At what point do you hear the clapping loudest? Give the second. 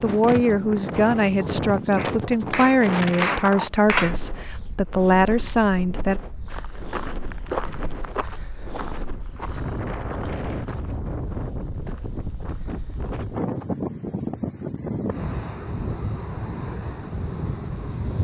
4 s.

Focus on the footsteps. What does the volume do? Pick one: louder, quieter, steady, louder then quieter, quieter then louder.
quieter.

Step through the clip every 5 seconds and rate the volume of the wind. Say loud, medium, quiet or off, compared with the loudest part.
loud, medium, loud, loud.